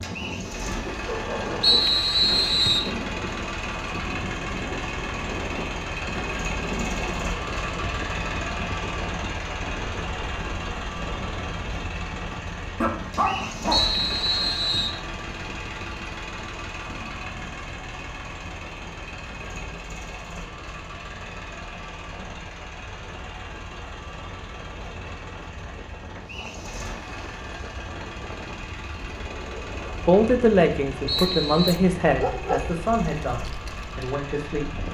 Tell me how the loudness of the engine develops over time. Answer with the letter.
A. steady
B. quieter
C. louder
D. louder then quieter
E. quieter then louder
B.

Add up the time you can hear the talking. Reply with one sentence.
You can hear the talking for 5 seconds altogether.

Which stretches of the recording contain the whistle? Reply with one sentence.
You can hear the whistle from 1.6 to 2.9 s, from 13.7 to 15.0 s and from 31.1 to 31.8 s.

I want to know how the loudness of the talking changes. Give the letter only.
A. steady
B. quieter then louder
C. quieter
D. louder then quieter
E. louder
C.